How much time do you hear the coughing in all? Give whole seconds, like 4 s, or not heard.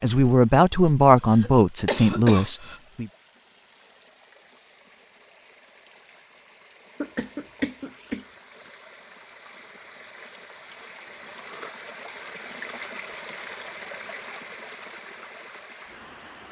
4 s.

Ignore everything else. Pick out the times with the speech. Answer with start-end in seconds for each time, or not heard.
0.0-3.1.